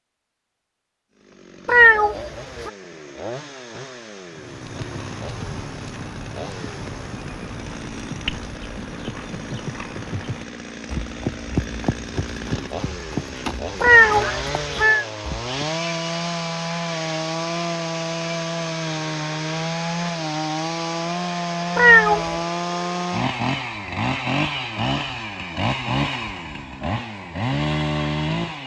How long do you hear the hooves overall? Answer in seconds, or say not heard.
11 s.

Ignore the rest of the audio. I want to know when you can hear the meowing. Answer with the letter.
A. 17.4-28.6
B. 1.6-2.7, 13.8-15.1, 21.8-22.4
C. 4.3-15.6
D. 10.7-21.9
B.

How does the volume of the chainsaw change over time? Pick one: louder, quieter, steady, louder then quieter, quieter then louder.
louder.